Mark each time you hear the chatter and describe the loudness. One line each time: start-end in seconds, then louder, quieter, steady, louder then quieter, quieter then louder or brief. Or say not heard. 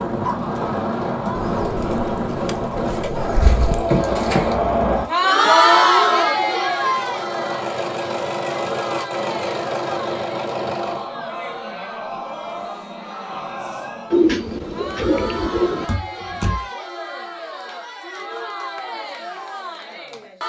0.1-20.4 louder then quieter.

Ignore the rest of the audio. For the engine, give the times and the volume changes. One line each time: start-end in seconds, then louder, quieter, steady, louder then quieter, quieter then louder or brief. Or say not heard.
0.0-11.1 quieter then louder.